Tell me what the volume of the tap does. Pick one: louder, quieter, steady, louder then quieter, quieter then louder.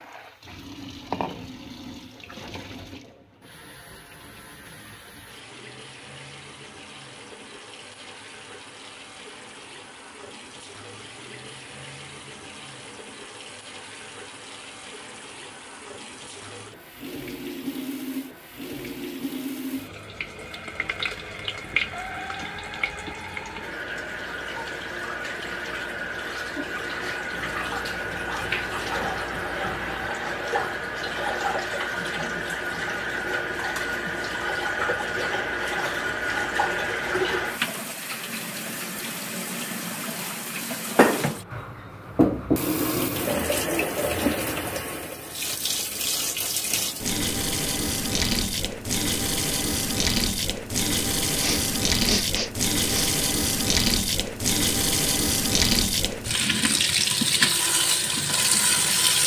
louder.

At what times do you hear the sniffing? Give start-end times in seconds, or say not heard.
51.4-53.1.